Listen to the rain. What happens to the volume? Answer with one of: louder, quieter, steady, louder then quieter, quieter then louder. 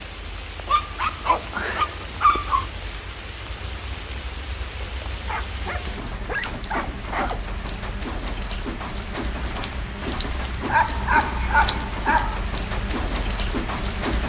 louder.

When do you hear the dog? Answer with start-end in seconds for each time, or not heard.
0.7-2.6, 4.8-7.4, 10.7-12.3.